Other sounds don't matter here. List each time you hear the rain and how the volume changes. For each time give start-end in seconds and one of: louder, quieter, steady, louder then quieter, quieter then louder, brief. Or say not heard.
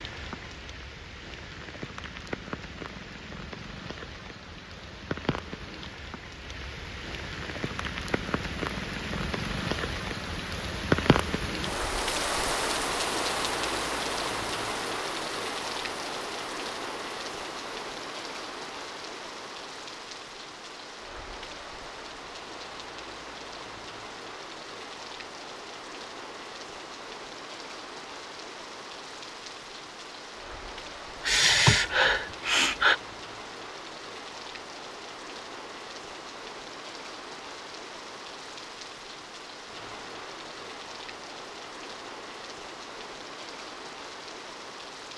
0.0-45.1 louder then quieter.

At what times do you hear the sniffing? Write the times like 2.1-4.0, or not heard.
31.2-33.0.